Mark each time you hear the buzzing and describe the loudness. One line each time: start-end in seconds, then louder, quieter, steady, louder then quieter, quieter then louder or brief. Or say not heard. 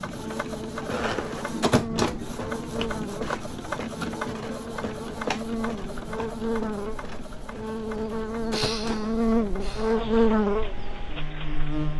0.0-11.9 louder.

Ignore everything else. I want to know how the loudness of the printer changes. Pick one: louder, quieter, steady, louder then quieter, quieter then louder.
quieter.